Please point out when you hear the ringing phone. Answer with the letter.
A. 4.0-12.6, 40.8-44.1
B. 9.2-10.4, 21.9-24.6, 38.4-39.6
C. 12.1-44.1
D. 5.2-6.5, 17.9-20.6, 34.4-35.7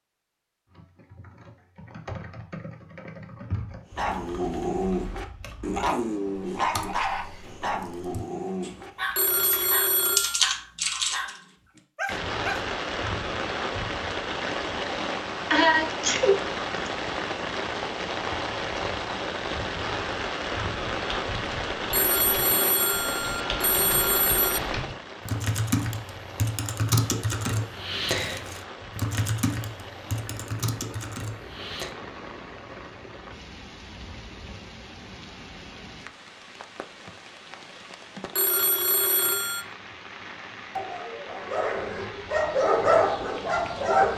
B.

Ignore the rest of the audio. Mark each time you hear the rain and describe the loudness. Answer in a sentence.
You can hear the rain from 12.1 to 44.1 s, getting quieter.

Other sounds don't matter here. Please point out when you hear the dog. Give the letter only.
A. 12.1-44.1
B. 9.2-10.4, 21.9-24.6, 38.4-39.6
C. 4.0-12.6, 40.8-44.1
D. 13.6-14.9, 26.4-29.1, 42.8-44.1
C.